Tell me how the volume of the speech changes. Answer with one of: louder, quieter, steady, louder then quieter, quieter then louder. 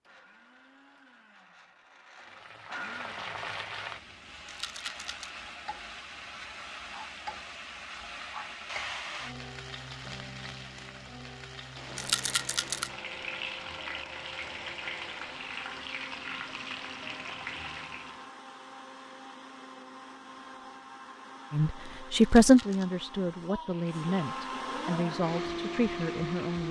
quieter.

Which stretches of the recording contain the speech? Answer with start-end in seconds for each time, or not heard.
21.5-26.6.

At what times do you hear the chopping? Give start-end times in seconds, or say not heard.
not heard.